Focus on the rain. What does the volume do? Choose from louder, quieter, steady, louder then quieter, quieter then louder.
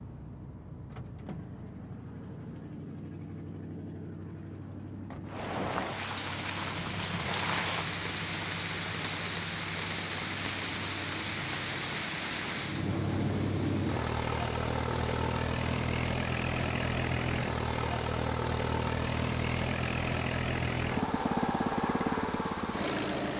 quieter.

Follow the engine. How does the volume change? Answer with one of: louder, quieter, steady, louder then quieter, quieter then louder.
louder.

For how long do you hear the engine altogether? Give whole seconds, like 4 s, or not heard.
23 s.